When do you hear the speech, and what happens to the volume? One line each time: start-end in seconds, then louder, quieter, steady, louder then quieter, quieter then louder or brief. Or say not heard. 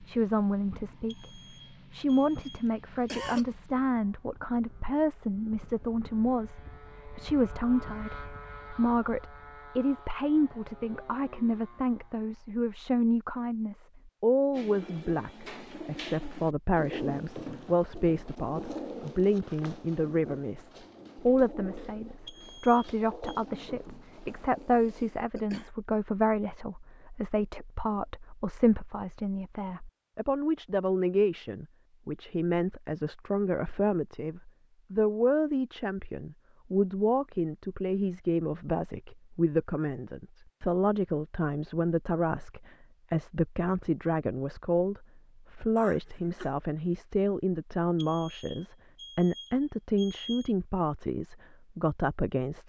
0.0-52.6 steady.